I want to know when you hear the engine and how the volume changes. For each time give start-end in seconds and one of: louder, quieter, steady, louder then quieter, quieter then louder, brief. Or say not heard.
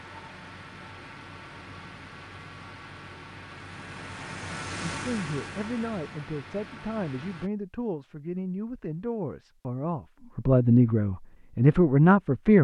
0.0-7.5 louder then quieter.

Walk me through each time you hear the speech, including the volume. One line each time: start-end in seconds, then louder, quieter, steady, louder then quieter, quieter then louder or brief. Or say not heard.
4.9-12.5 louder.